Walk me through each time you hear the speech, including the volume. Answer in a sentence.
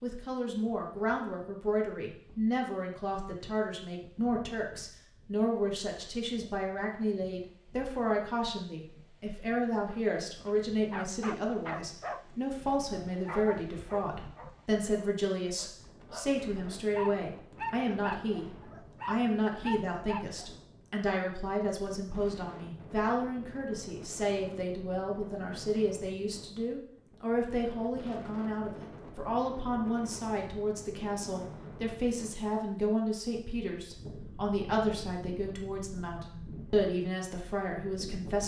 You can hear the speech from 0.0 to 18.4 s, at a steady volume; and from 19.1 to 38.4 s, at a steady volume.